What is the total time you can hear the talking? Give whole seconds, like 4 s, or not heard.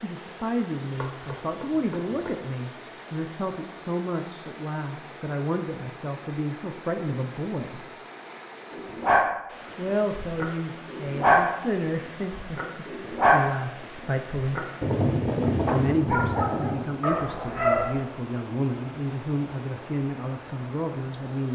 19 s.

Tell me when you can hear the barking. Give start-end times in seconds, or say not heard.
8.7-18.0.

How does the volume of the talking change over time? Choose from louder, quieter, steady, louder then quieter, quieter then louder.
steady.